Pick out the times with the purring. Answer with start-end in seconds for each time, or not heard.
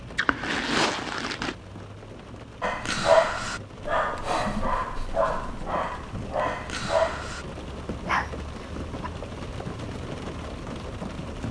not heard.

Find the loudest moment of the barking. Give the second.
3 s.